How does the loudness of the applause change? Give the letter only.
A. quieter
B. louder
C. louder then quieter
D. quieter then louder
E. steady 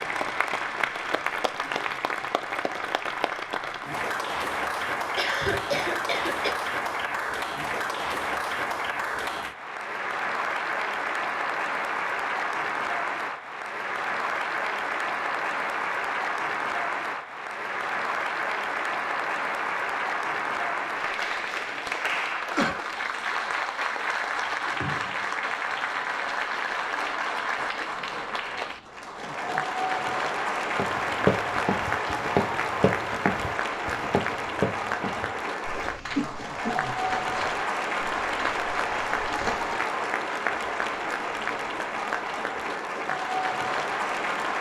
E.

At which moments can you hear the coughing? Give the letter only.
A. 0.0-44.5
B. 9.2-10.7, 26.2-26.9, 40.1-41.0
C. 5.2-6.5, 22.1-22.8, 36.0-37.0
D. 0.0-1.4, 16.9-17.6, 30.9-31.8
C.